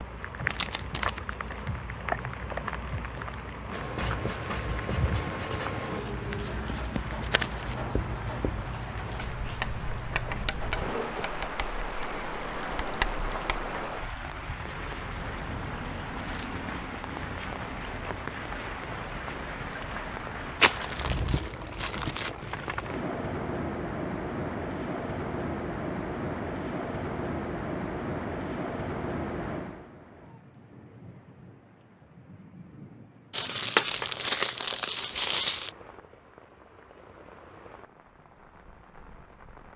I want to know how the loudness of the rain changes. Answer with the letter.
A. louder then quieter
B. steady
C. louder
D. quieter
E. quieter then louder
D.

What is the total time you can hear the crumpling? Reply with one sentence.
The crumpling can be heard for 5 seconds in total.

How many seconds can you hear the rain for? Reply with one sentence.
The rain can be heard for 40 seconds in total.